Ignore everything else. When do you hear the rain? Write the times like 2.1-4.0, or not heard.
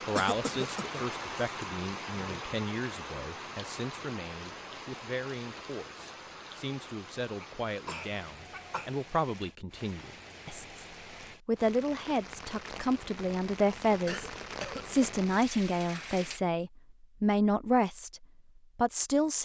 0.0-16.4.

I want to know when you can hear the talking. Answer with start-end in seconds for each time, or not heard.
0.1-10.8, 11.4-19.4.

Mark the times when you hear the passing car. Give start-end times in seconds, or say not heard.
not heard.